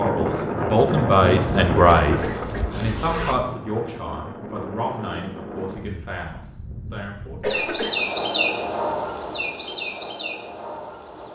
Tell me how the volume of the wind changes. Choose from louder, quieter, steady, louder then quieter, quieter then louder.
quieter.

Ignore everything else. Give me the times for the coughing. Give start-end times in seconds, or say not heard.
1.9-2.8, 7.4-8.1.